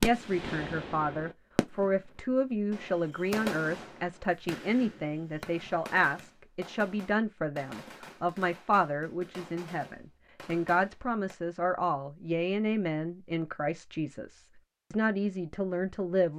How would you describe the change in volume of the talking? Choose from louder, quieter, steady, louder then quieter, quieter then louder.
steady.